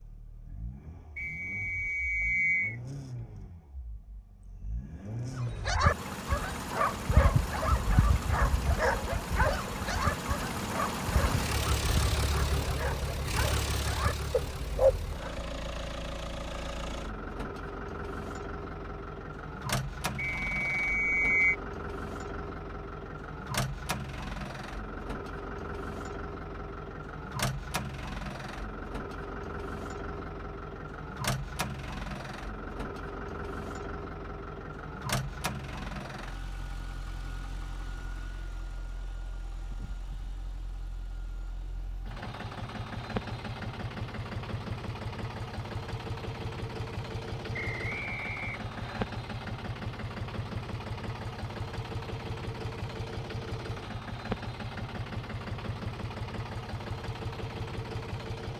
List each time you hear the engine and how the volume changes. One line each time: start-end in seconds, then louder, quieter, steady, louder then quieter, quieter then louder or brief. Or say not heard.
0.0-58.5 steady.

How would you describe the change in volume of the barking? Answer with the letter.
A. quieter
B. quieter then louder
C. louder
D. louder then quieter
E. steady
A.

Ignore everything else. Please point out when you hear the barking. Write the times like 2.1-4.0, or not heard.
5.3-15.2.